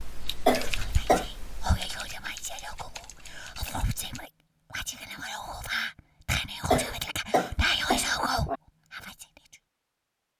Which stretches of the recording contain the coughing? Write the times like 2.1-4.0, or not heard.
0.5-1.2, 6.7-8.6.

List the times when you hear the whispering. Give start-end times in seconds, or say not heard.
0.6-9.6.